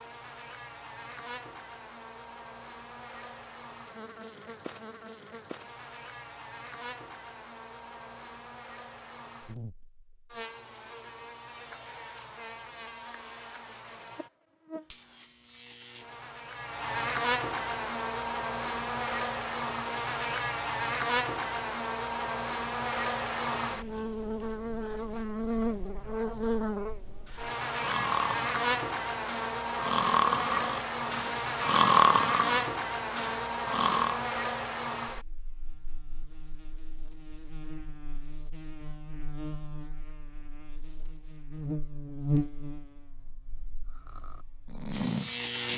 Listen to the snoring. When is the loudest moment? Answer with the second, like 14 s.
32 s.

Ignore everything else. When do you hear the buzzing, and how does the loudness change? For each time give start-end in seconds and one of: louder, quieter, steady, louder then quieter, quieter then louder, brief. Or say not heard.
0.0-45.7 louder then quieter.